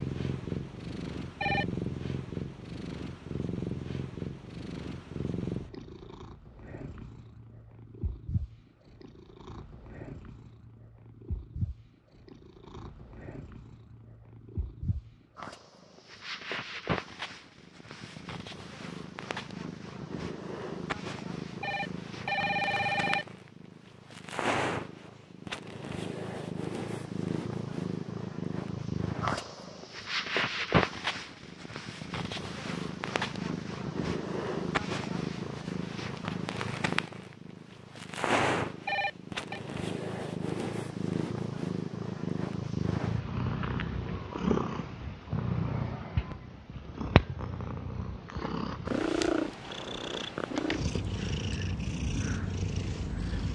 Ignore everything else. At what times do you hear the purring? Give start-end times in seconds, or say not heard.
0.0-53.5.